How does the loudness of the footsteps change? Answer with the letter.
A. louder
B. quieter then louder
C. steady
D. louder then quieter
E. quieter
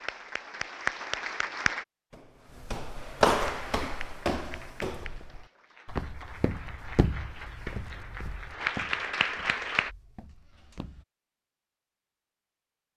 E.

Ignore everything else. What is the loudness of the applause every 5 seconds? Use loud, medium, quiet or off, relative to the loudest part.
loud, loud, off.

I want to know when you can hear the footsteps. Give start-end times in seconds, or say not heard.
2.1-11.1.